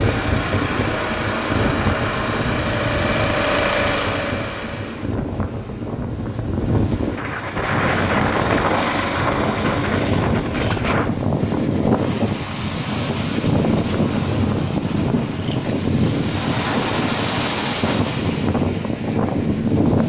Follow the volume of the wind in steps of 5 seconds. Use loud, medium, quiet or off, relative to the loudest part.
medium, loud, loud, loud.